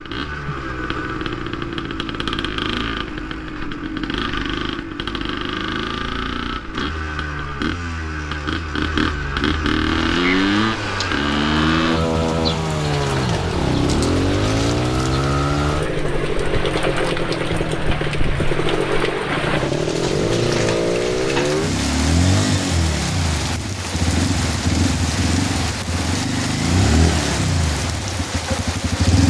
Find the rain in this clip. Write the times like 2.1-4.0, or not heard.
9.8-29.2.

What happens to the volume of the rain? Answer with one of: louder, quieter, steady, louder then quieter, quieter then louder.
steady.